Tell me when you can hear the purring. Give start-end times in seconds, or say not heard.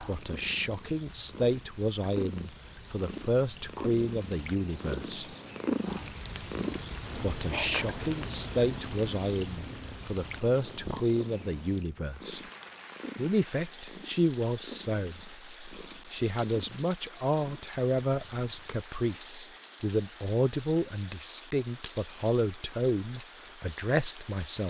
0.0-18.8.